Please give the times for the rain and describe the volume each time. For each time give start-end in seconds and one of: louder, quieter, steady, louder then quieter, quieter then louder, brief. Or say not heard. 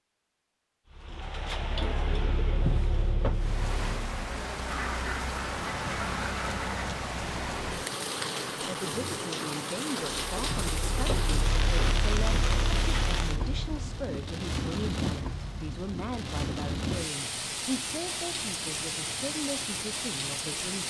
3.3-20.8 steady.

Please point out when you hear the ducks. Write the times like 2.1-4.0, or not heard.
4.7-7.0.